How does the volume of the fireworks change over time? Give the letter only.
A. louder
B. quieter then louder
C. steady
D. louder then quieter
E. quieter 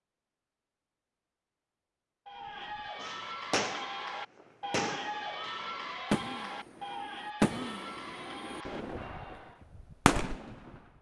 B.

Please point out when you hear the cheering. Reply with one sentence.
The cheering can be heard from 2.2 to 9.7 s.